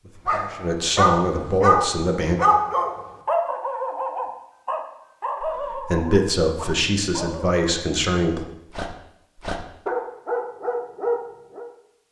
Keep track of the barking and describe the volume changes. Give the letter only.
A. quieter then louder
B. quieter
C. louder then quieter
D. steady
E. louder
A.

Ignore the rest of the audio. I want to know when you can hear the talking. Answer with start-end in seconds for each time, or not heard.
0.0-2.4, 5.4-8.4.